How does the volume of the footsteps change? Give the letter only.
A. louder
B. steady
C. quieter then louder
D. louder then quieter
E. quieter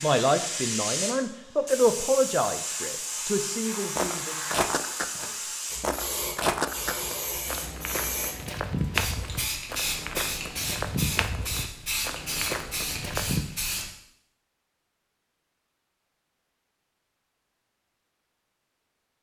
E.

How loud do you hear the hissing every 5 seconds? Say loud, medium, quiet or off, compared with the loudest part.
loud, loud, loud, off.